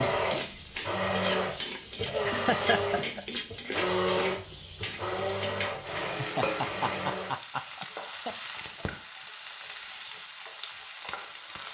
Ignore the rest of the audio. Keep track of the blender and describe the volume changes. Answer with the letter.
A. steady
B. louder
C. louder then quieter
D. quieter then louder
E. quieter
E.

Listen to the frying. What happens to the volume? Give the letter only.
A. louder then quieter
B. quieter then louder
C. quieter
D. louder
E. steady
E.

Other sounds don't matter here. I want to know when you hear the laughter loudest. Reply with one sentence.
The loudest moment of the laughter is at 3 seconds.